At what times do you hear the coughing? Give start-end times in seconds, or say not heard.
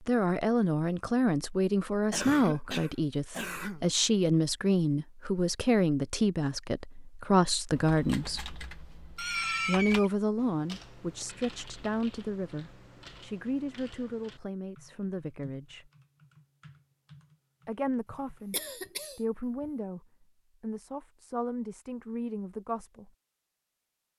2.1-3.9, 9.2-10.1, 18.1-19.7.